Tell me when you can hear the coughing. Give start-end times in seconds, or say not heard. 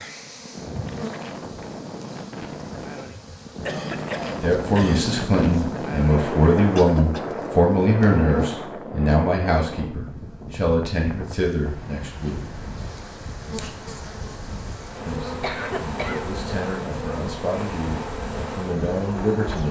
3.6-5.0, 6.8-7.5, 15.4-16.3.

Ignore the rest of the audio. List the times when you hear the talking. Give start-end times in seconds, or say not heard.
4.3-12.5, 15.1-19.6.